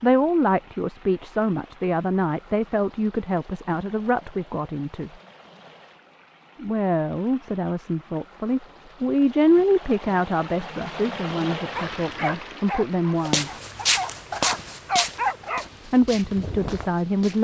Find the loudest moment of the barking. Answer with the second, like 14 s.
15 s.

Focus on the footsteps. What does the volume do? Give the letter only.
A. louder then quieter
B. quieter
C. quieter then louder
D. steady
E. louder
B.